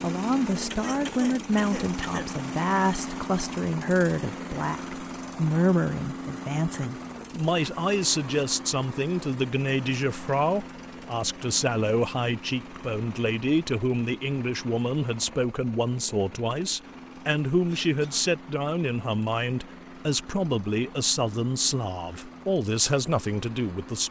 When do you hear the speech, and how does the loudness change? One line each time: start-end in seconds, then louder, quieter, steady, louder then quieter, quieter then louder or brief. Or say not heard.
0.0-24.0 steady.